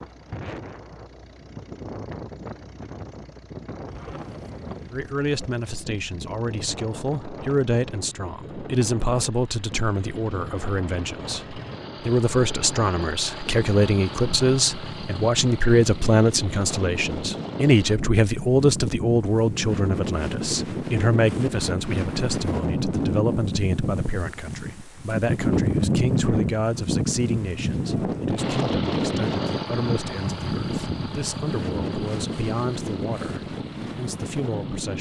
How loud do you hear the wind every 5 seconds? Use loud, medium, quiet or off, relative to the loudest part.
quiet, quiet, quiet, medium, loud, loud, medium.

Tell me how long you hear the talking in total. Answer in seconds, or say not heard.
30 s.